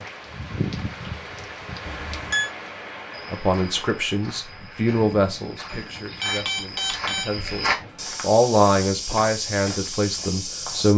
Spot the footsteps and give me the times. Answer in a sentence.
You can hear the footsteps from 3.1 to 10.9 s.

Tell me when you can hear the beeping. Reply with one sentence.
The beeping can be heard from 1.8 to 2.5 s and from 5.7 to 7.2 s.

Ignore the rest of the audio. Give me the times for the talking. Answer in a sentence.
You can hear the talking from 3.3 to 10.9 s.